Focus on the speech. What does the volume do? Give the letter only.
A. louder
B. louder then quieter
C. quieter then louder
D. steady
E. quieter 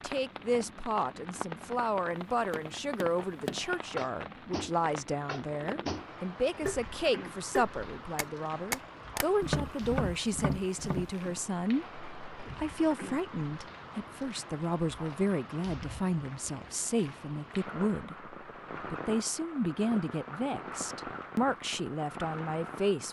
D.